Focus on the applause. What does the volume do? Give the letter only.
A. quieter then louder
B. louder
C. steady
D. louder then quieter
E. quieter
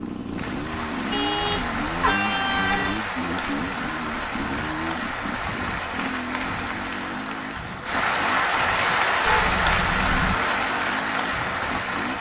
B.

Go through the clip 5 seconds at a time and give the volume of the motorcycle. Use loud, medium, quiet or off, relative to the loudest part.
loud, medium, medium.